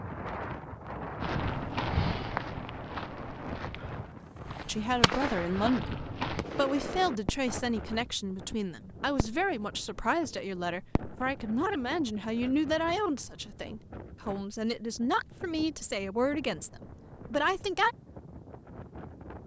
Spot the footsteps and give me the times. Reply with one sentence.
The footsteps can be heard from 1.2 to 6.5 s.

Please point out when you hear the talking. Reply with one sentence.
The talking can be heard from 4.7 to 17.9 s.